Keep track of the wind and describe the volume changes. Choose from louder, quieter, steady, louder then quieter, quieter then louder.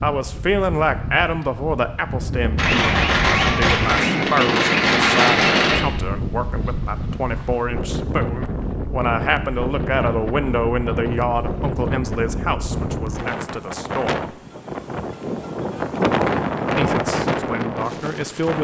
louder.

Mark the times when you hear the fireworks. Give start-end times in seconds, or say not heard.
2.5-5.8.